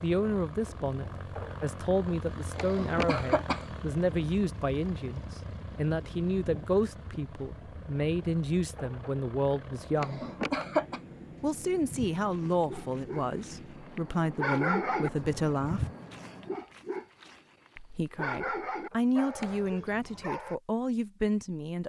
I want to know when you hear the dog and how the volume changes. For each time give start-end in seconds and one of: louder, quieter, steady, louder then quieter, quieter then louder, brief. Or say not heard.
11.3-20.6 louder then quieter.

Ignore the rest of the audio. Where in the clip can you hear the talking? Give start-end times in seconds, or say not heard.
0.0-10.2, 11.4-15.8, 17.8-21.8.